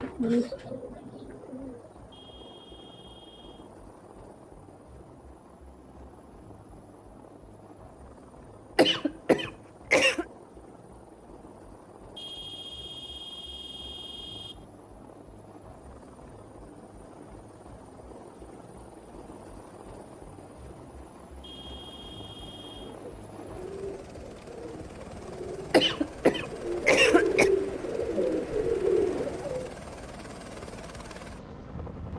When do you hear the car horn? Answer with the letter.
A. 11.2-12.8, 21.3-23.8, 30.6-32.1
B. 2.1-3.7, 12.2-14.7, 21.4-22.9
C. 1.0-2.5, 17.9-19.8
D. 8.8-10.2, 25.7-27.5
B.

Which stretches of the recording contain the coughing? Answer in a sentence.
You can hear the coughing from 8.8 to 10.2 s and from 25.7 to 27.5 s.